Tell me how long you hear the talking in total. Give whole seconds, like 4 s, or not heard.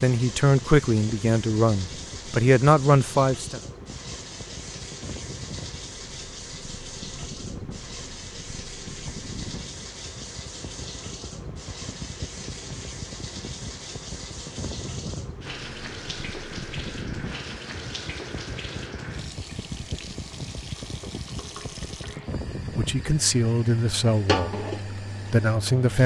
6 s.